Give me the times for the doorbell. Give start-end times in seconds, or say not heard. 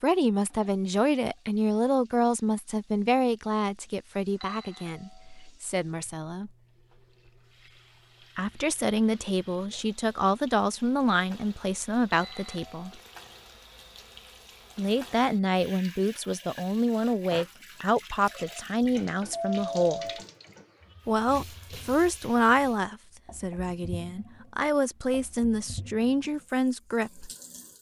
4.4-5.3, 12.1-12.9, 18.8-20.2.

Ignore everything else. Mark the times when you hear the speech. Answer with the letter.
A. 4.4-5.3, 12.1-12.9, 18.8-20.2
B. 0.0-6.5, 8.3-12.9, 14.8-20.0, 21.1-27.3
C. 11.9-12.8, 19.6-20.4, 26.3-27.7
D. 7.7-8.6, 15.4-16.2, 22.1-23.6
B.